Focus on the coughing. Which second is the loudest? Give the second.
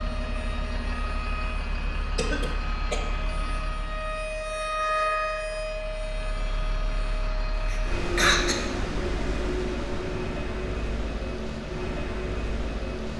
8 s.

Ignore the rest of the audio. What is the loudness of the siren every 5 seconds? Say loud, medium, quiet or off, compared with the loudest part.
loud, loud, off.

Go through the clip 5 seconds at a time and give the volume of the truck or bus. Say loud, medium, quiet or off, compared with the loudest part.
medium, loud, loud.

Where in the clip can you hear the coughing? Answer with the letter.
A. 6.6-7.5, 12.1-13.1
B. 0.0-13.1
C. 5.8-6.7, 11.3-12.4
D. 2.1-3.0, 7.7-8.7
D.